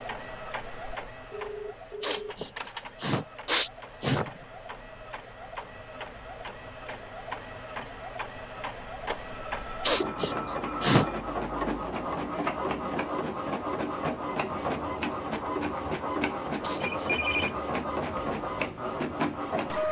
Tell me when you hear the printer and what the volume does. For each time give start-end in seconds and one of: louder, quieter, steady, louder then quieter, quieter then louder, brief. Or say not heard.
0.0-19.8 louder.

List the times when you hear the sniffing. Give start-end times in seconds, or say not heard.
2.0-4.3, 9.8-11.1, 16.6-17.4.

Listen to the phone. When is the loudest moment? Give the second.
17 s.